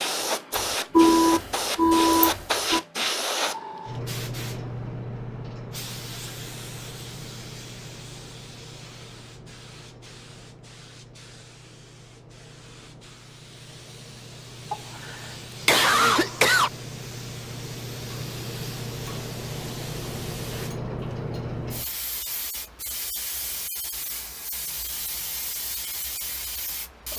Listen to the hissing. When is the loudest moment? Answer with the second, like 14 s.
3 s.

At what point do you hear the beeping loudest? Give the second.
1 s.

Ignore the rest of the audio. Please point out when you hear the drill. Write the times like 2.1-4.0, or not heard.
not heard.